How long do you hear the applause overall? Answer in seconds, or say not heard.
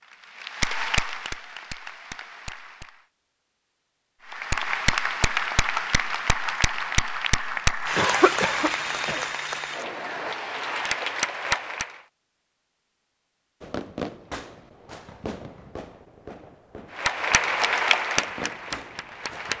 13 s.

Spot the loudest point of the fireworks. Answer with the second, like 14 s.
14 s.